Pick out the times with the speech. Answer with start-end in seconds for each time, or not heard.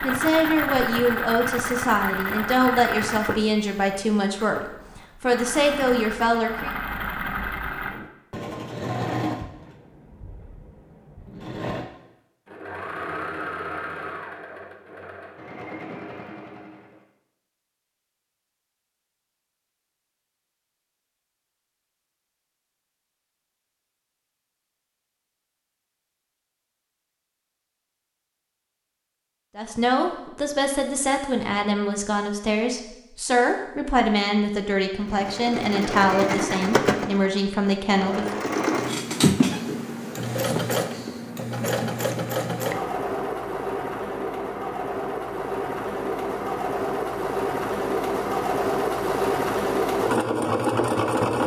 0.0-6.7, 29.6-38.4.